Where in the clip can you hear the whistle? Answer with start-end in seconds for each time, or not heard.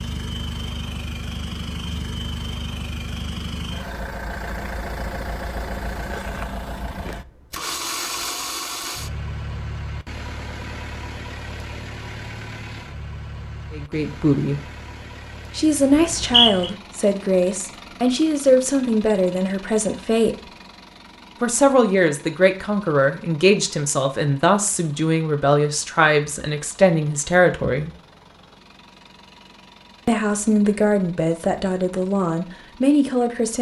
15.9-16.7.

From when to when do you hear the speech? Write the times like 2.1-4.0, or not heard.
13.7-14.6, 15.6-20.5, 21.4-27.9, 30.1-33.5.